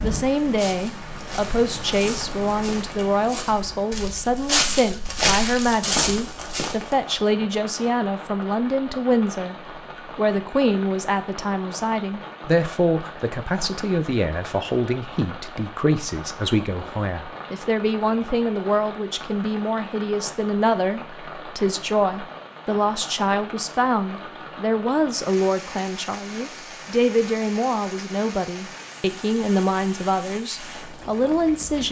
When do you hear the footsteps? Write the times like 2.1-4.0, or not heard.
0.5-7.0.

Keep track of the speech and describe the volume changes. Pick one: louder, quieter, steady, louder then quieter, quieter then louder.
steady.